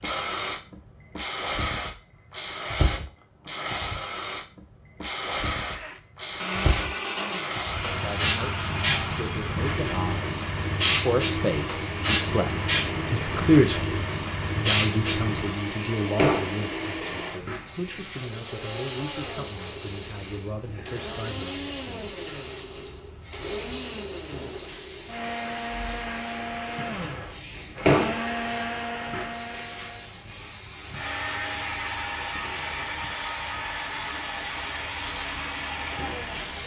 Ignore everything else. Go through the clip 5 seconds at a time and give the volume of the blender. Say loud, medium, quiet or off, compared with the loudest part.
off, loud, loud, loud, loud, loud, loud, loud.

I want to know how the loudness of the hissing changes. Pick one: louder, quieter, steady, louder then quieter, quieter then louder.
quieter.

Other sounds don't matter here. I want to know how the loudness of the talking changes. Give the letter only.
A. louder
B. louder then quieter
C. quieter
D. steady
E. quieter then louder
B.